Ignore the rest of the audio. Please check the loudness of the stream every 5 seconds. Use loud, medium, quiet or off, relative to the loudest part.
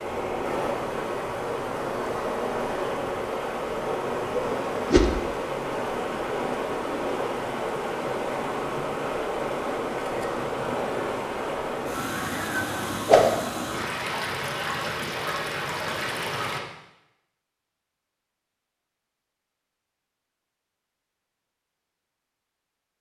loud, loud, loud, loud, off.